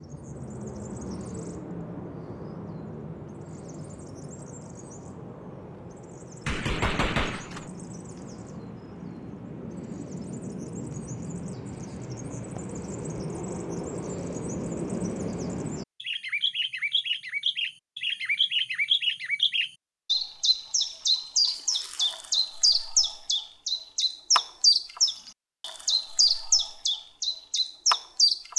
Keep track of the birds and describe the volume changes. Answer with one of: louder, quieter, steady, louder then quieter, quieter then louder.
louder.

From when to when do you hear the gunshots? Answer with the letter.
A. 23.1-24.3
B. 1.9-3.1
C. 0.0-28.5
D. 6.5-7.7
D.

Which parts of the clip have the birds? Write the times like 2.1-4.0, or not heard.
0.0-28.5.